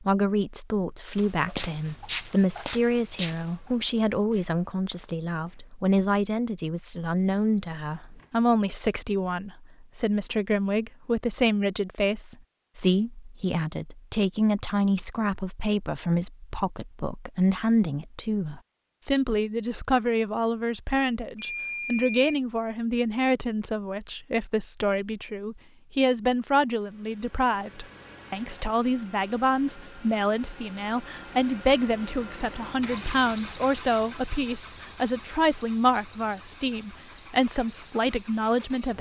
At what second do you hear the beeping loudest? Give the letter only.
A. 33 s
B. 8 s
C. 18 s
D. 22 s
D.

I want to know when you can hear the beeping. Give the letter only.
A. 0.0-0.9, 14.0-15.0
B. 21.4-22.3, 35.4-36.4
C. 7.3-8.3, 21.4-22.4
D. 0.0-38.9
C.